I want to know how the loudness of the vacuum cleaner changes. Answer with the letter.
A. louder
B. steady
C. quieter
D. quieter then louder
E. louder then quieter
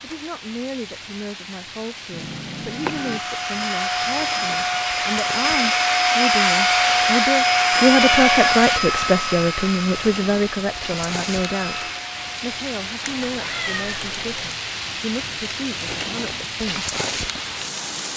E.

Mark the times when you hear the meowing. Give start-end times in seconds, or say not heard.
2.1-3.2, 7.7-8.7, 13.1-14.6.